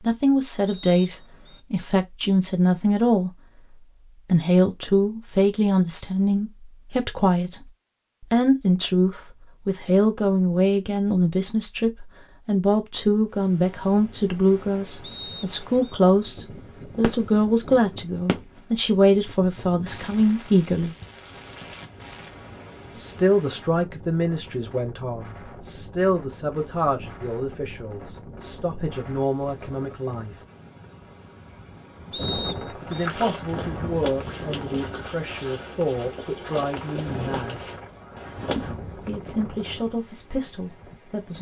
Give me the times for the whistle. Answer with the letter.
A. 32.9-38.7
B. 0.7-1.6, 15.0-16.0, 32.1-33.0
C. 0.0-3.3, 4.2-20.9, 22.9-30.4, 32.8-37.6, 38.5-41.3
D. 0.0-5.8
B.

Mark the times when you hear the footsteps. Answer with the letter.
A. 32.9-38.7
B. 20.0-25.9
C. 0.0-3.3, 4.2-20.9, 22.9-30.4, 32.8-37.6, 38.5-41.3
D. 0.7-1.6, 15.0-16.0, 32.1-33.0
A.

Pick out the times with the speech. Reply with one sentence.
The speech can be heard from 0.0 to 3.3 s, from 4.2 to 20.9 s, from 22.9 to 30.4 s, from 32.8 to 37.6 s and from 38.5 to 41.3 s.